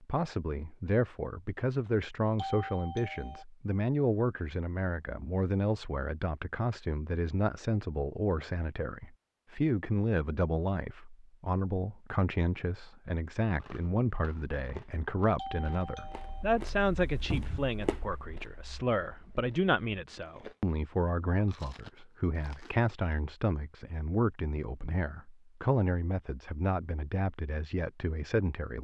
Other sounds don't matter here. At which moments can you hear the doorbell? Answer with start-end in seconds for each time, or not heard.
2.4-3.5, 15.3-16.4.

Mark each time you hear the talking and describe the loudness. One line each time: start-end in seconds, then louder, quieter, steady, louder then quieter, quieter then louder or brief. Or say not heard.
0.0-28.7 steady.